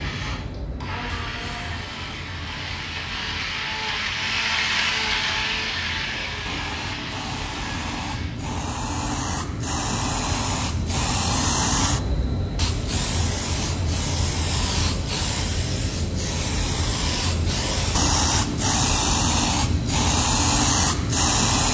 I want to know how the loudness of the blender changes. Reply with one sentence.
The volume of the blender goes up, then down.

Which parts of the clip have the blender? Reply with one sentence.
You can hear the blender from 0.0 to 8.4 s.